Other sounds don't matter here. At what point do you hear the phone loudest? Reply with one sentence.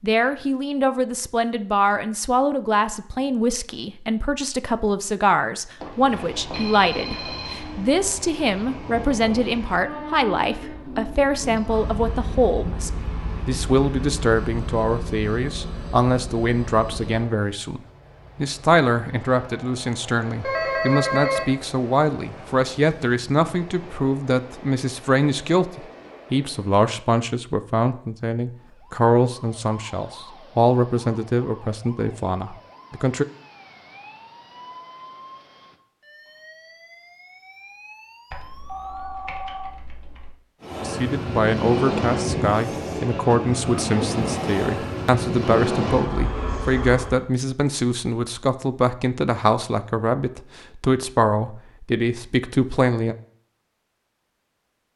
The loudest moment of the phone is at 21 seconds.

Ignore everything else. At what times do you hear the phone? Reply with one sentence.
You can hear the phone from 5.8 to 7.6 s, from 20.4 to 21.6 s and from 38.3 to 40.3 s.